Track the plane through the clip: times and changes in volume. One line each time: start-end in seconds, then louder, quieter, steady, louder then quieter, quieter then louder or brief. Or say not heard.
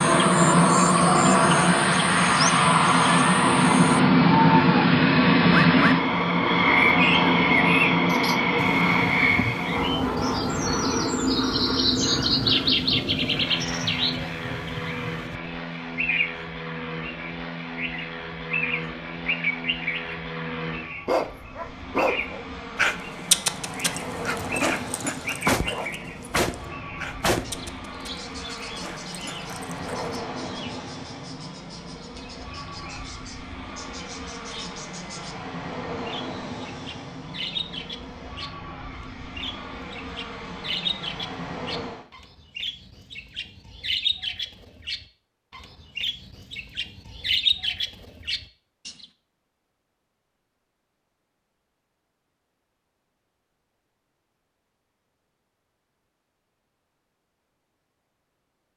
0.0-42.0 quieter.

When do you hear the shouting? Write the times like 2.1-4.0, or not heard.
not heard.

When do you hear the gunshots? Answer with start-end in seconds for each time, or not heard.
25.2-27.7.